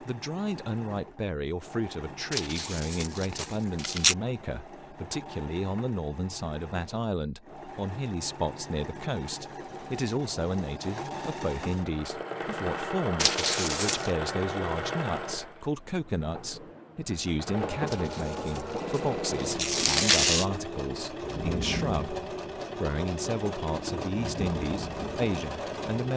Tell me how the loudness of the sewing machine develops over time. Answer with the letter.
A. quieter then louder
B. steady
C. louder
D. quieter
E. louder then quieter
C.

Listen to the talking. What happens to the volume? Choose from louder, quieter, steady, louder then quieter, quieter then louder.
steady.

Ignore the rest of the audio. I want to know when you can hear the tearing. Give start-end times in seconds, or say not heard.
2.3-4.2, 13.2-14.1, 17.9-20.4.